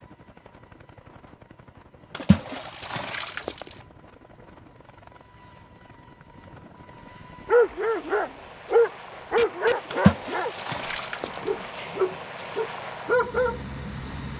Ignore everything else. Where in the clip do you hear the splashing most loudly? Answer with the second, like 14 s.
10 s.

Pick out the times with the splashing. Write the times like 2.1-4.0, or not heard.
2.1-3.8, 9.9-11.6.